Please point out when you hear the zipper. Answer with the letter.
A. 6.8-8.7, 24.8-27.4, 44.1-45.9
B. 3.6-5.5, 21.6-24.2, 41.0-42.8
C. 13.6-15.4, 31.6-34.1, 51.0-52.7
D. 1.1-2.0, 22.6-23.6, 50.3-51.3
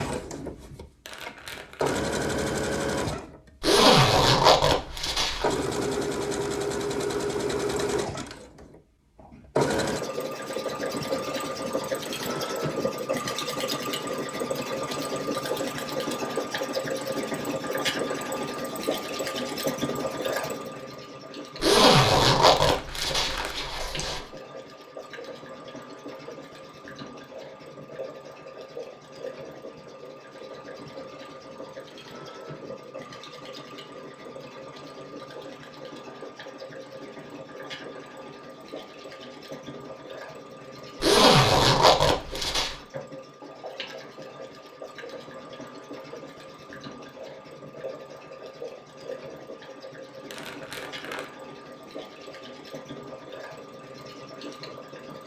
B.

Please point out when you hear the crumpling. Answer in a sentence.
You can hear the crumpling from 1.1 to 2.0 s, from 22.6 to 23.6 s and from 50.3 to 51.3 s.